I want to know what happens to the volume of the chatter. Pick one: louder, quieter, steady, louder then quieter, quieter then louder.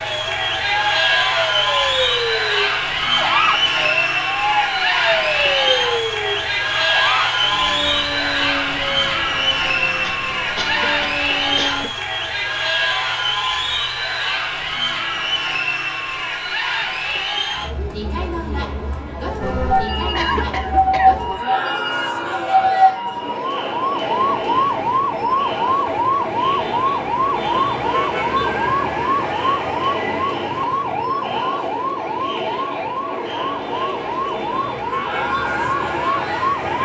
quieter.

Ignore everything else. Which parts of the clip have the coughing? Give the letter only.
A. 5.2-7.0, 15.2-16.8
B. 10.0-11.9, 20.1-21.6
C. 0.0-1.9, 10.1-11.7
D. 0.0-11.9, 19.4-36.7
B.